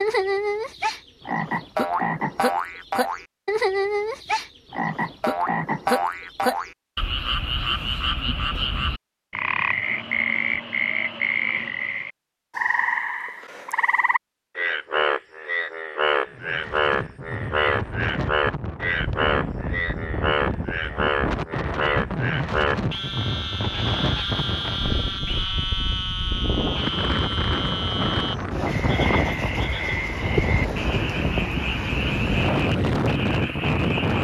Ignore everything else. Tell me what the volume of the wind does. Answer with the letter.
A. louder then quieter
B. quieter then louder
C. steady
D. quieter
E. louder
E.